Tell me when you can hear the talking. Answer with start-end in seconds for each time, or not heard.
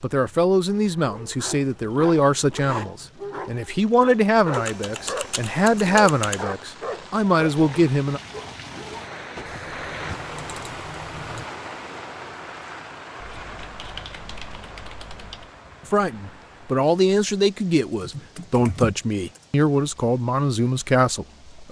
0.0-8.2, 15.8-21.6.